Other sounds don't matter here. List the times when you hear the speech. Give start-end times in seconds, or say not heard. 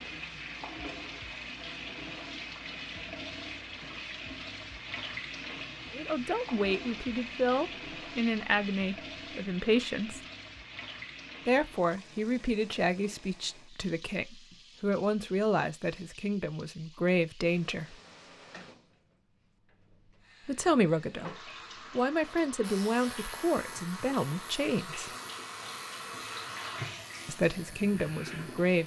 5.9-10.2, 11.4-17.9, 20.4-25.1, 27.2-28.8.